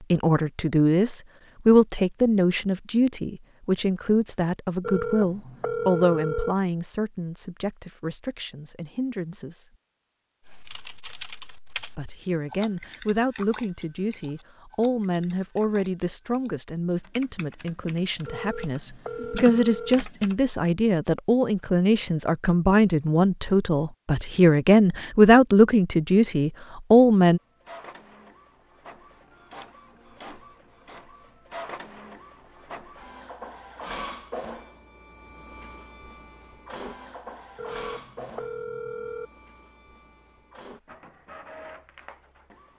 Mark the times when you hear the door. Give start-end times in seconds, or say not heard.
not heard.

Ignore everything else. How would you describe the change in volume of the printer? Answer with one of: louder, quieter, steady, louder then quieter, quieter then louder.
louder then quieter.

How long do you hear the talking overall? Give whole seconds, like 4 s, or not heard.
25 s.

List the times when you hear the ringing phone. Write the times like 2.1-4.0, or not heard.
4.8-6.5, 18.2-19.9, 37.5-39.3.